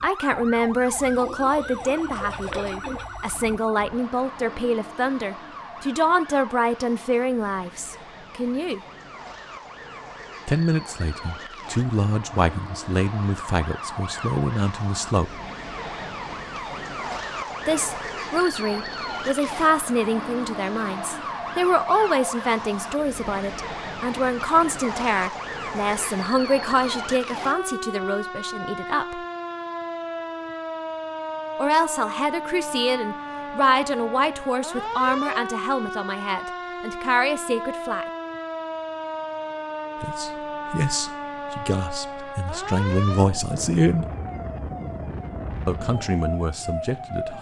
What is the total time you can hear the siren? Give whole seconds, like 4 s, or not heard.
47 s.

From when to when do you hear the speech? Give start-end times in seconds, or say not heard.
0.0-8.8, 10.4-15.4, 17.6-29.2, 31.6-38.0, 40.0-44.1, 45.6-47.3.